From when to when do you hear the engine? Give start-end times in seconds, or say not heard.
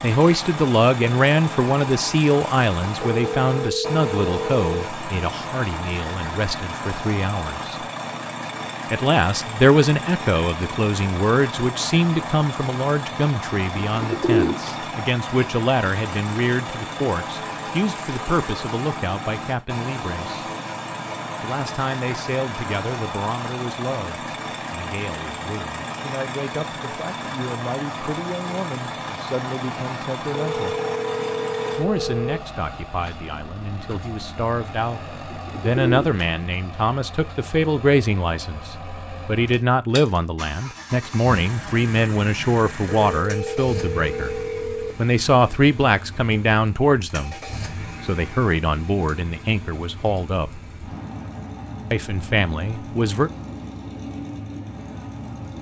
0.0-55.5.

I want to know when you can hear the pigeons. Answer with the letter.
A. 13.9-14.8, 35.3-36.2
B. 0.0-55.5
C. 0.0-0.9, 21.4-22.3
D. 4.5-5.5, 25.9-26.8
A.